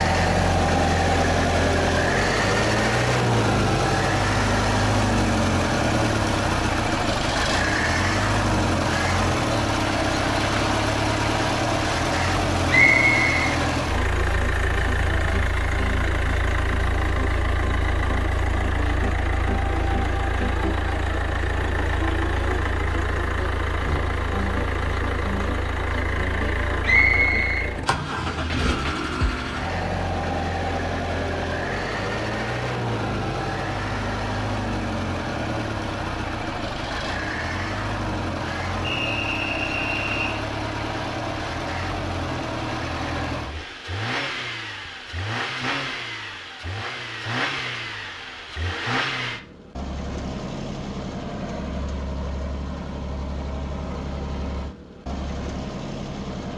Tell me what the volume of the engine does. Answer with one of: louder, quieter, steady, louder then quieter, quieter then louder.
quieter.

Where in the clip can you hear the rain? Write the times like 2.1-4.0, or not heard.
not heard.